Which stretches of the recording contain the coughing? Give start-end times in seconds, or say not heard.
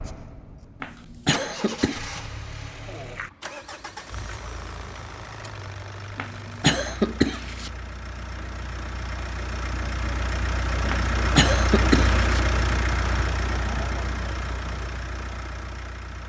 0.8-2.0, 6.2-7.7, 10.9-12.4.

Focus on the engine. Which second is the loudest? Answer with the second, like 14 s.
12 s.